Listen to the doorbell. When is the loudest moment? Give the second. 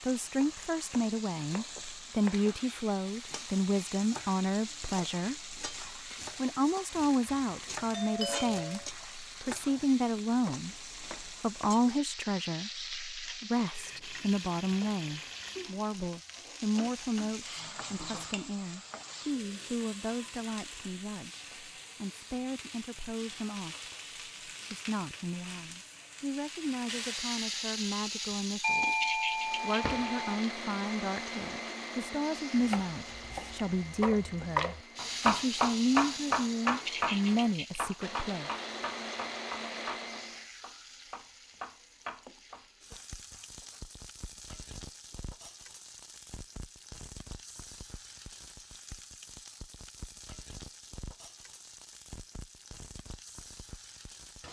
29 s.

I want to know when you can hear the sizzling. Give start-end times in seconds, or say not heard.
0.0-54.4.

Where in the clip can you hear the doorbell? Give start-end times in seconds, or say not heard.
7.2-8.8, 28.6-30.2.